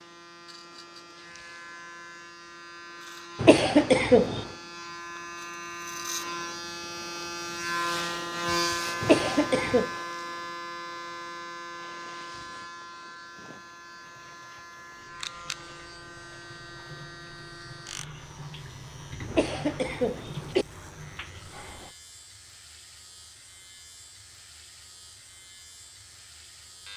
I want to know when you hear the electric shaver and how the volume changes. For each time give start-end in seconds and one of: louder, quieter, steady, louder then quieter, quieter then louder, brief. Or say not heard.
0.0-26.9 louder then quieter.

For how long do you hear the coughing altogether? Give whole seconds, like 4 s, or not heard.
3 s.